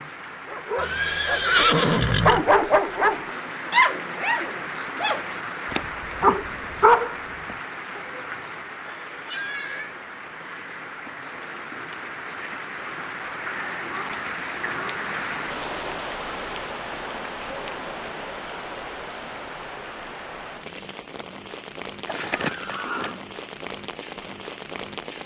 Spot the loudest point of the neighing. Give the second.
2 s.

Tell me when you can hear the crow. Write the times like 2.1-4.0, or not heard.
not heard.